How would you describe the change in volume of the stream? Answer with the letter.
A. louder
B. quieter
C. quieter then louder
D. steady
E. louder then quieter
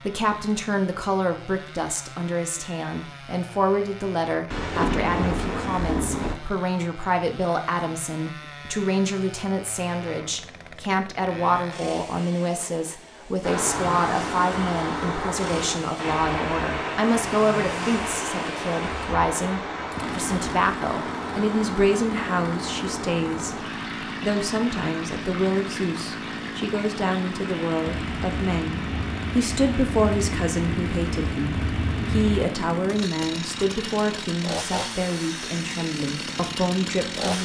B.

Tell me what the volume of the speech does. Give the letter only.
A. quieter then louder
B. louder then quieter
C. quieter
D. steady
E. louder
D.